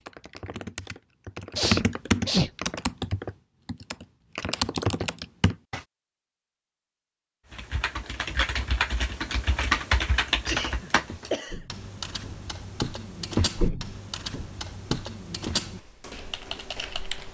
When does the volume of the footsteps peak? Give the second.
14 s.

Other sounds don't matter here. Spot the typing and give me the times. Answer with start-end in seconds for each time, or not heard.
0.1-5.8, 7.5-17.3.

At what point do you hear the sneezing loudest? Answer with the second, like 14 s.
2 s.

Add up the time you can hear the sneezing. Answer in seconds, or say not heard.
2 s.